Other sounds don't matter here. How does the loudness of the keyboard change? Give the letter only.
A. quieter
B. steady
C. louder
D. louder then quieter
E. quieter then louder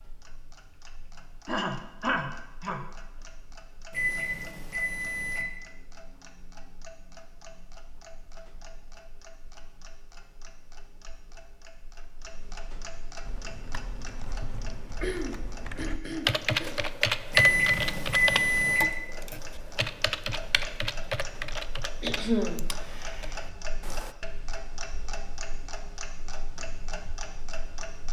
D.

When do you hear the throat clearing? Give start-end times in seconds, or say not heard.
1.4-2.8, 15.0-16.8, 22.0-22.7.